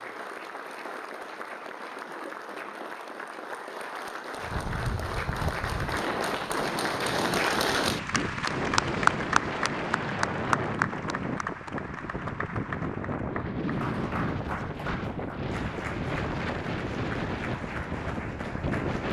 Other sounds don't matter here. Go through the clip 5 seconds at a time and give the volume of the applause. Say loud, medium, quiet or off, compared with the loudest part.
medium, loud, medium, medium.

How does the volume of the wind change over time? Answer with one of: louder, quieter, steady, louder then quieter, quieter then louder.
steady.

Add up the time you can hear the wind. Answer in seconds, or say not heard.
15 s.